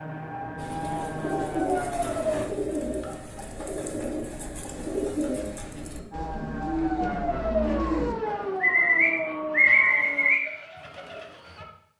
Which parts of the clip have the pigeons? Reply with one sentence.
The pigeons can be heard from 0.6 to 11.7 s.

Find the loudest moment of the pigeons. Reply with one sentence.
The volume of the pigeons peaks at 10 seconds.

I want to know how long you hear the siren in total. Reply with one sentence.
You can hear the siren for 7 seconds altogether.